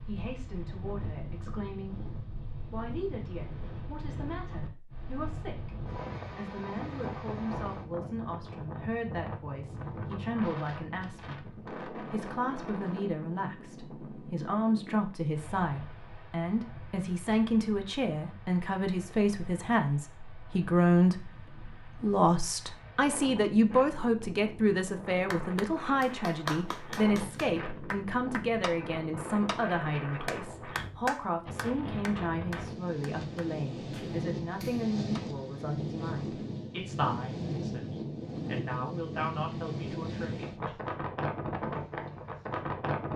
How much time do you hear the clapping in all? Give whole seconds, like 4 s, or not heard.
10 s.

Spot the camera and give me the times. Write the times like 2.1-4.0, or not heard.
not heard.